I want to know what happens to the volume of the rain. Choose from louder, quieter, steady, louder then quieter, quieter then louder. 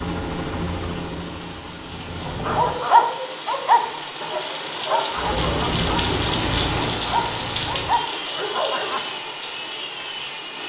louder then quieter.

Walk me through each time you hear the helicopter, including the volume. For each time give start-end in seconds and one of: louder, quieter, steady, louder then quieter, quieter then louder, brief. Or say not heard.
0.0-2.9 brief
5.1-10.6 quieter.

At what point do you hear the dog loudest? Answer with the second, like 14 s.
3 s.